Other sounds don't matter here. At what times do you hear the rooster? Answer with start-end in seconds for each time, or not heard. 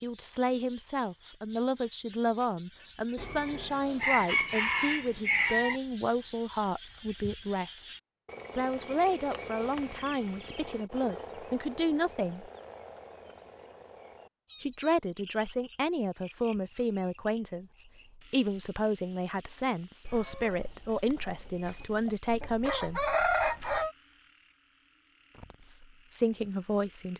3.1-5.8, 20.1-23.9.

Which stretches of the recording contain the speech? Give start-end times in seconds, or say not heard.
0.0-7.9, 8.6-12.5, 14.6-23.1, 25.6-27.1.